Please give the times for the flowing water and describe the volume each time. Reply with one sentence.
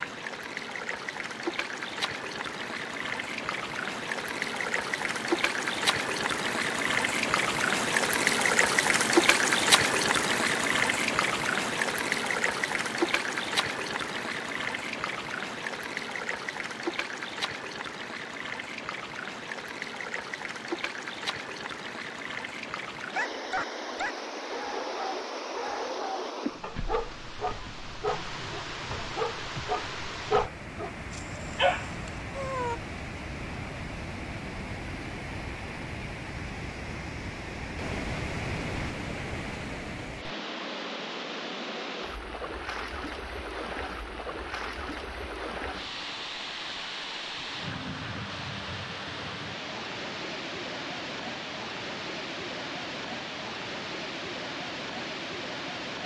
The flowing water can be heard from 0.0 to 56.0 s, getting quieter.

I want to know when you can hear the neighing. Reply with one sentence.
You can't hear the neighing here.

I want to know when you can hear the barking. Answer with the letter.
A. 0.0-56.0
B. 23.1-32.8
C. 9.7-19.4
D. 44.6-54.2
B.